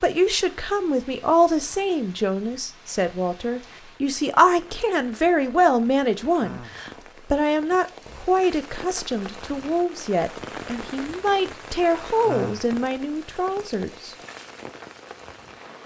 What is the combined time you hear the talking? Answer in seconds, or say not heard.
14 s.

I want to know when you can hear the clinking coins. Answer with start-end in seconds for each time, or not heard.
not heard.